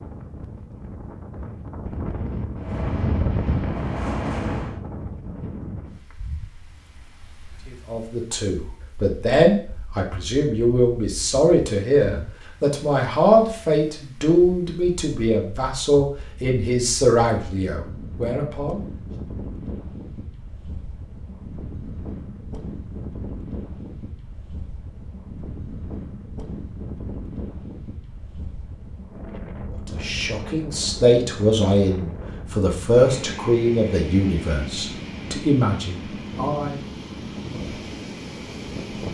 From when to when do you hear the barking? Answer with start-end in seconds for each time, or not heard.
not heard.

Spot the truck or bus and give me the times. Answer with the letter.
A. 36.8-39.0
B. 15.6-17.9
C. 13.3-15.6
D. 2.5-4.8
D.